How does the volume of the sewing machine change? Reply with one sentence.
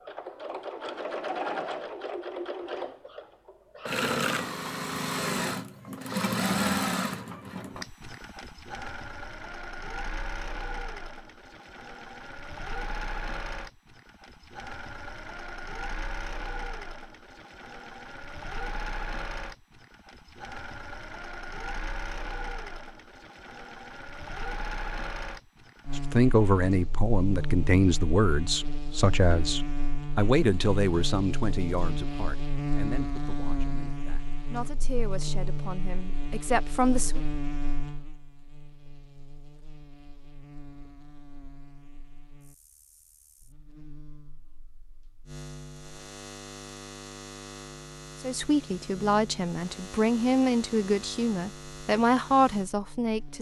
The volume of the sewing machine goes down.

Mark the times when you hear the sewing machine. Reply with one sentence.
The sewing machine can be heard from 0.0 to 26.1 s.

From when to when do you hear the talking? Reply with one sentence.
The talking can be heard from 25.9 to 37.2 s and from 48.2 to 53.3 s.